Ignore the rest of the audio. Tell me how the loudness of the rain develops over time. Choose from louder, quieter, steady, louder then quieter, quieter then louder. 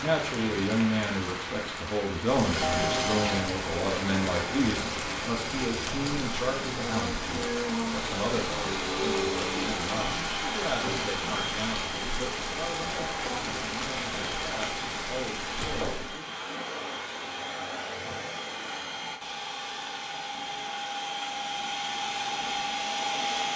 steady.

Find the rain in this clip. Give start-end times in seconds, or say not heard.
0.0-16.2.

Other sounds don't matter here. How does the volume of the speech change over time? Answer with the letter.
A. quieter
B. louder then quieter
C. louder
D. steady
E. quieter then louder
A.